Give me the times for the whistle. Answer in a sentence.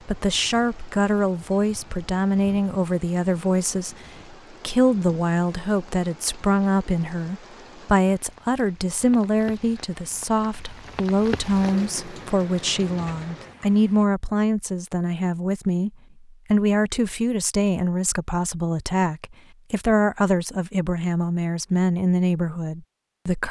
The whistle can't be heard in this clip.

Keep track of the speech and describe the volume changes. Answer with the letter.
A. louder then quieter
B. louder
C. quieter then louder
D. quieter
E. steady
E.